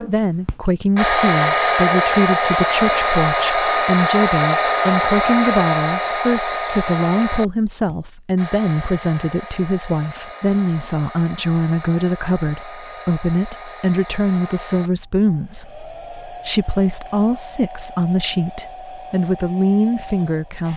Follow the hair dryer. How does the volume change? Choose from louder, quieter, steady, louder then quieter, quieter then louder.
quieter.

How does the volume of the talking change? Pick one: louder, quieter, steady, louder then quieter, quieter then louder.
steady.